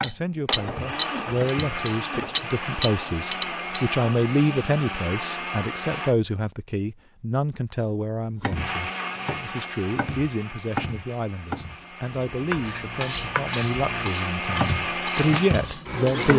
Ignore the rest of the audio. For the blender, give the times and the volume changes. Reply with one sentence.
The blender can be heard from 0.1 to 6.2 s, at a steady volume; and from 8.5 to 16.3 s, getting quieter then louder.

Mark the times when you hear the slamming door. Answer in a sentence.
You can't hear the slamming door here.